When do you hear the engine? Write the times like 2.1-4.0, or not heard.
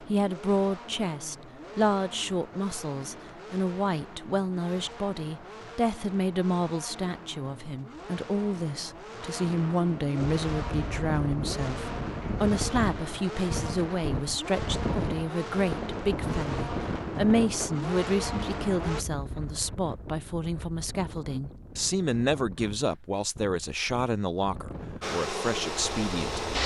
0.0-19.1, 25.0-26.6.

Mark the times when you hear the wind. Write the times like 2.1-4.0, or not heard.
10.2-26.6.